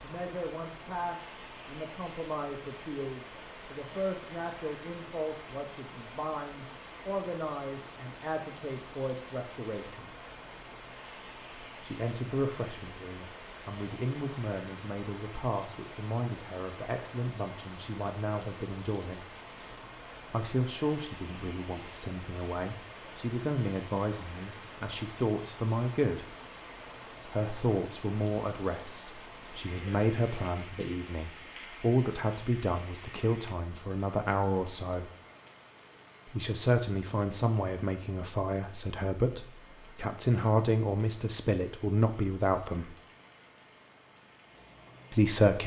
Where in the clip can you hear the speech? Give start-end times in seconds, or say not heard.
0.0-10.1, 11.8-19.2, 20.2-26.4, 27.2-35.1, 36.2-43.0, 45.1-45.6.